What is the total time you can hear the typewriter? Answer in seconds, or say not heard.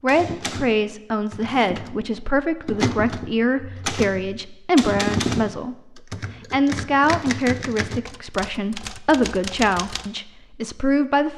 10 s.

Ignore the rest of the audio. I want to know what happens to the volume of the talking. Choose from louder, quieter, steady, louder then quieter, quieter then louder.
steady.